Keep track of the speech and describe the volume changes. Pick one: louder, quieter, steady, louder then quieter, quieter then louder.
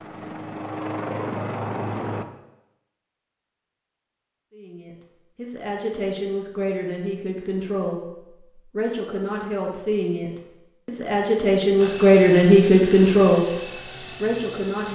louder.